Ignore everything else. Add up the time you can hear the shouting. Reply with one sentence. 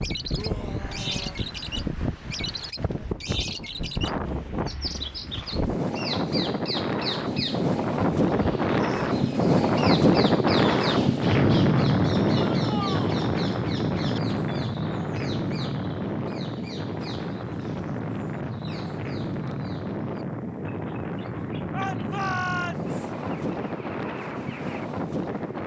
You can hear the shouting for 3 seconds altogether.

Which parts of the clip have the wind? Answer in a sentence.
The wind can be heard from 0.0 to 25.6 s.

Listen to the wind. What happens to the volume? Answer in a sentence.
The loudness of the wind goes up, then down.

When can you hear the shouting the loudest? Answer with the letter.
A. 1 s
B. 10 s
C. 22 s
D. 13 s
C.